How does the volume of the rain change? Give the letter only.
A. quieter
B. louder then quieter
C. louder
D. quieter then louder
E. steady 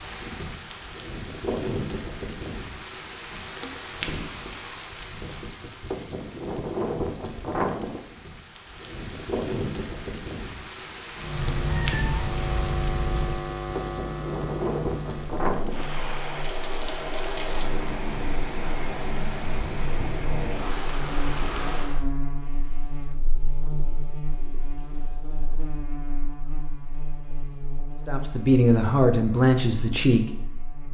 E.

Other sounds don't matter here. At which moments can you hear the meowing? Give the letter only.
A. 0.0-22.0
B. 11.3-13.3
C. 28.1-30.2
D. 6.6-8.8
B.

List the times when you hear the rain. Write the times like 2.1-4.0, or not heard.
0.0-22.0.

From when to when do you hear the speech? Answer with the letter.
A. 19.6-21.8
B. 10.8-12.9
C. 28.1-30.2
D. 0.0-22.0
C.